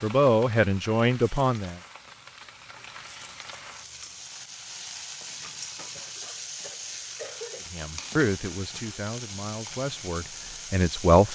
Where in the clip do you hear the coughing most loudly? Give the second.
7 s.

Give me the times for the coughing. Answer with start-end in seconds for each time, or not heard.
5.7-7.7.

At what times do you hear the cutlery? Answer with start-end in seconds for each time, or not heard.
not heard.